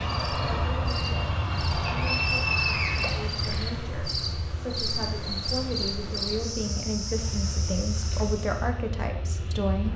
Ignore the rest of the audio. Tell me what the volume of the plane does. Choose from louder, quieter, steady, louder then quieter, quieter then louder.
quieter.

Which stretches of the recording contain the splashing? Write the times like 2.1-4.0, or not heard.
3.0-4.0.